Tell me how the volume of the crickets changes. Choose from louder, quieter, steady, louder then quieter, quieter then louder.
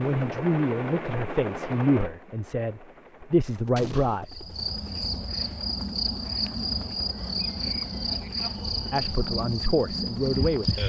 steady.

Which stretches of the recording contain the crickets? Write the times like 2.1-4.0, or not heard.
4.2-10.8.